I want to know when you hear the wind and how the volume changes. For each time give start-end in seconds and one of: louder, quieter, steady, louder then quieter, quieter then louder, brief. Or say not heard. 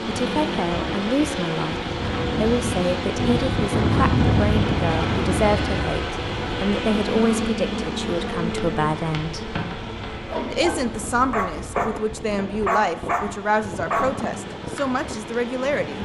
0.0-16.0 louder then quieter.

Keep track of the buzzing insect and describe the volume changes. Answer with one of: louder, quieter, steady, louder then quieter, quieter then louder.
quieter.